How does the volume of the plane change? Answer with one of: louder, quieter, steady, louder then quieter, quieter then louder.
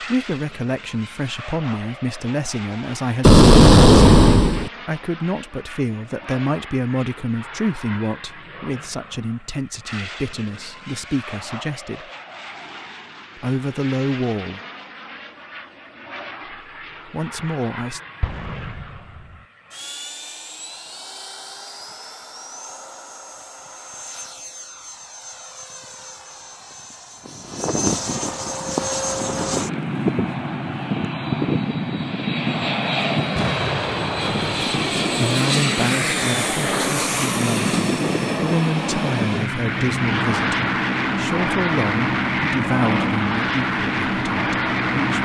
louder.